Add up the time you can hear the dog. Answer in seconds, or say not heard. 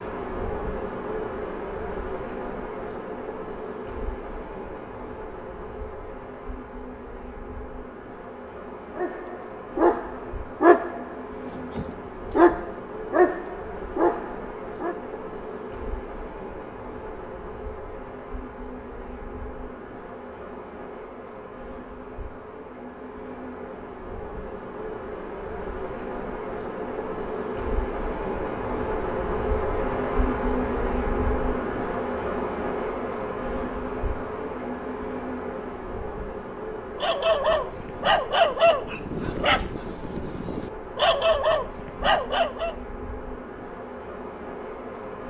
12 s.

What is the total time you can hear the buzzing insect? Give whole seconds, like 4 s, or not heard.
45 s.